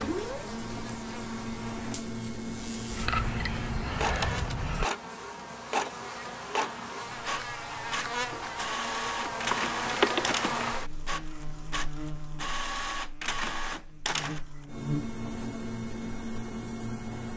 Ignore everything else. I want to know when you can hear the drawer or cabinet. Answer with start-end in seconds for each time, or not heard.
not heard.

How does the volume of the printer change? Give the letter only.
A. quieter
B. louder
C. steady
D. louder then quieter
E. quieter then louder
C.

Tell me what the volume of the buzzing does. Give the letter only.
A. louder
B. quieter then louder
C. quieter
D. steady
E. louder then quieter
E.